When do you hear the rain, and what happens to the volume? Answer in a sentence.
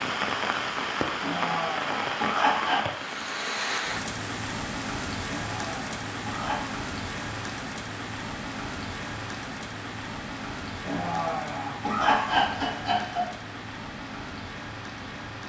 You can hear the rain from 0.0 to 15.4 s, getting quieter.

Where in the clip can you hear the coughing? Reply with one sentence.
The coughing can be heard from 1.2 to 2.9 s, from 5.2 to 6.8 s and from 10.8 to 13.3 s.